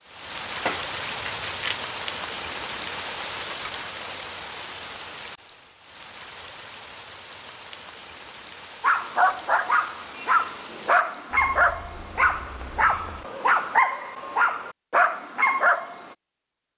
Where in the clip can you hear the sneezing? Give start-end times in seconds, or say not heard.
not heard.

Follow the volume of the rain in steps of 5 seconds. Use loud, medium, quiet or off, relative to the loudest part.
loud, medium, quiet, off.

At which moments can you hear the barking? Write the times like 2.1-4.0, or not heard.
8.8-16.1.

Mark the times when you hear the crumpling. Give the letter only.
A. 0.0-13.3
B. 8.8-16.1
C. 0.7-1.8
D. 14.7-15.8
C.